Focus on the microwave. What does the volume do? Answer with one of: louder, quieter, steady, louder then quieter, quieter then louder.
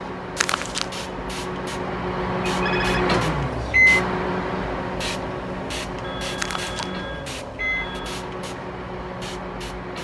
louder then quieter.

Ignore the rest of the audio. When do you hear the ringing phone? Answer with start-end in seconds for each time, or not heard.
2.5-3.0, 6.0-8.2.